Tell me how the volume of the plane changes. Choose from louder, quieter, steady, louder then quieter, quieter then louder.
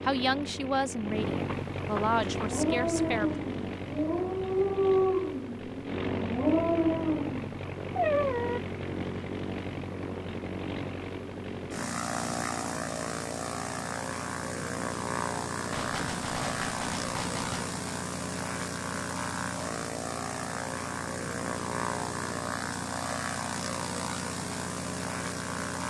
steady.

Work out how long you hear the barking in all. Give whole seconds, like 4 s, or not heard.
6 s.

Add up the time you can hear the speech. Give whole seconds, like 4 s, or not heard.
3 s.